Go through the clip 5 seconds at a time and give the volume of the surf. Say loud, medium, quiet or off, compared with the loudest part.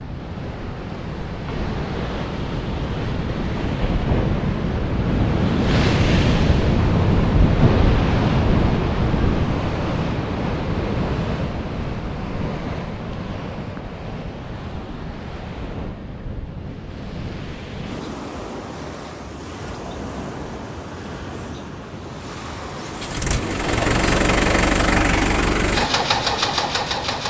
medium, loud, medium, quiet, quiet, quiet.